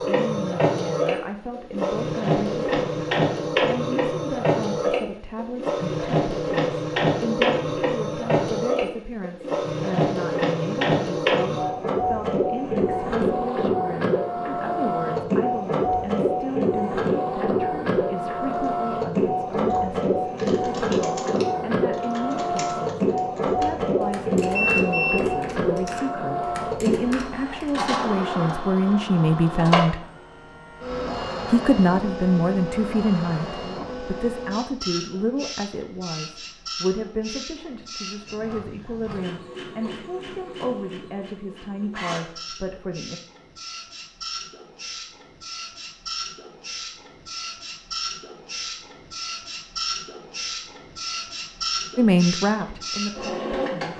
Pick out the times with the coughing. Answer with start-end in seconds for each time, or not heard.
not heard.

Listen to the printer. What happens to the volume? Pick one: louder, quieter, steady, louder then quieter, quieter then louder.
quieter.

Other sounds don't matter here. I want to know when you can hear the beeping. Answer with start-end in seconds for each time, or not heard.
24.4-25.4.